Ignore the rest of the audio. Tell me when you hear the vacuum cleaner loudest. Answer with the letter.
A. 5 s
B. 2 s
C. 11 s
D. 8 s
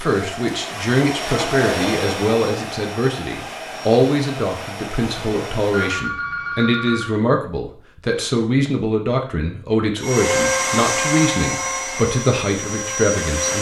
C.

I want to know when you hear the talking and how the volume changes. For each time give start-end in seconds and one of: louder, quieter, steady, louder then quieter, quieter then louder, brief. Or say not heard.
0.0-13.5 steady.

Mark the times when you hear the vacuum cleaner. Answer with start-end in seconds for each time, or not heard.
0.0-6.1, 9.9-13.5.